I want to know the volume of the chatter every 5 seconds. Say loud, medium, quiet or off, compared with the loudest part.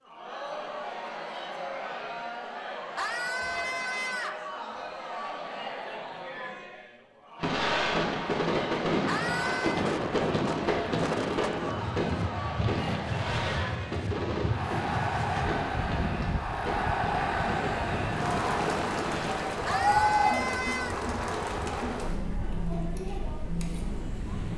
medium, medium, medium, loud, loud.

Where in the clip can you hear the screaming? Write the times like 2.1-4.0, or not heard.
3.0-4.5, 9.1-9.8, 19.6-20.9.